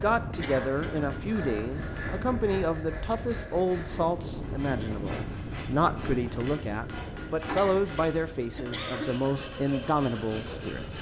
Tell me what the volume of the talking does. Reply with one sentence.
The volume of the talking stays about the same.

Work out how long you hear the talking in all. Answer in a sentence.
You can hear the talking for 11 seconds altogether.